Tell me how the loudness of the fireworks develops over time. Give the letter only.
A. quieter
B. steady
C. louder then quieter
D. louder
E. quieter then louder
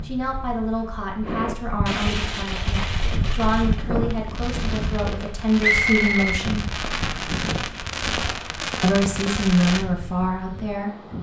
E.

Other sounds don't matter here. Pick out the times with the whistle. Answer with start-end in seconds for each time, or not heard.
5.6-6.4.